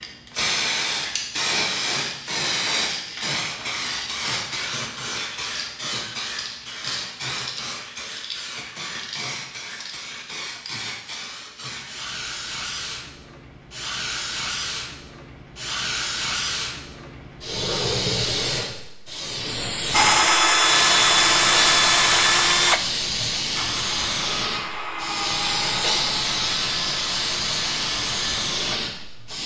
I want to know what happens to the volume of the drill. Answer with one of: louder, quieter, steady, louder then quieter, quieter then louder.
quieter.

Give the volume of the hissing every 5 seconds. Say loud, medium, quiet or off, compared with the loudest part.
loud, medium, medium, loud, loud, loud.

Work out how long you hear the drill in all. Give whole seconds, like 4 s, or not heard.
9 s.